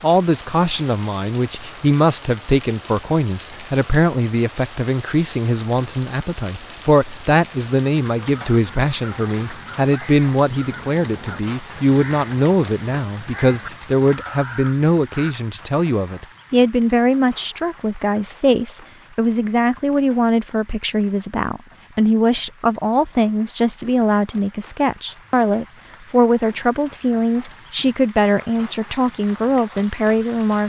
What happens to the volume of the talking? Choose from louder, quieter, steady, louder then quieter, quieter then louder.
steady.